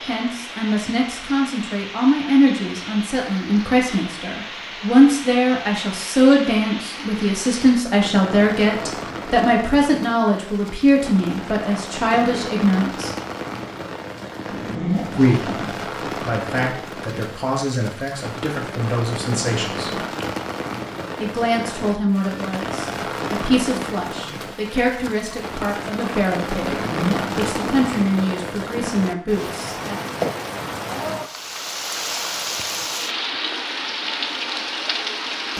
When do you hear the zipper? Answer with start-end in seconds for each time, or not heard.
14.5-15.8, 26.7-28.0.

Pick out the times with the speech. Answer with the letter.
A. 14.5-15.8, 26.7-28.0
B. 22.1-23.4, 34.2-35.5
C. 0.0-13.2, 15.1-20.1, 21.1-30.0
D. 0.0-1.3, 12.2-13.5
C.